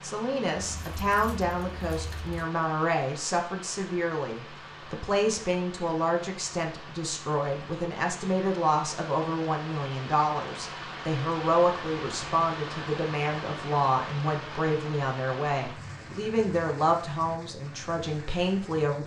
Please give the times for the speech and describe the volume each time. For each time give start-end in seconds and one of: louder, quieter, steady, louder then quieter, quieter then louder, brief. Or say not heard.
0.0-19.0 steady.